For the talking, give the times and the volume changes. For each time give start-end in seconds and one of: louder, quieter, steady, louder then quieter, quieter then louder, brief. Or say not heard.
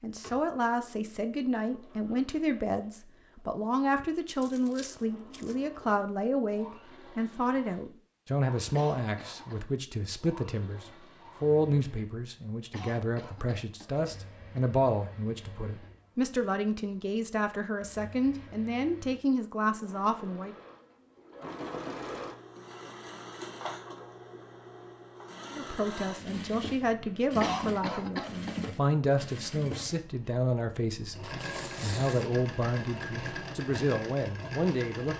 0.0-20.6 steady
25.5-35.1 steady.